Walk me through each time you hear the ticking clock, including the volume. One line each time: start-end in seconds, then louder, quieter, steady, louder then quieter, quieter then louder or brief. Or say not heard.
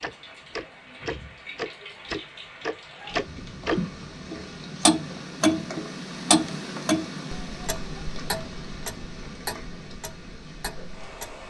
0.0-11.4 louder then quieter.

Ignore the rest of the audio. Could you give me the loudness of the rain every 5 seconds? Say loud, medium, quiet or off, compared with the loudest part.
loud, loud, medium.